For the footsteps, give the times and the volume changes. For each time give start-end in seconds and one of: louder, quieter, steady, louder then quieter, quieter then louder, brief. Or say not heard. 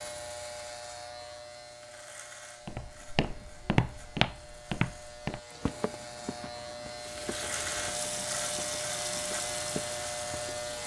2.6-10.7 quieter then louder.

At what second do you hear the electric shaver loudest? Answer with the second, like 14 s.
8 s.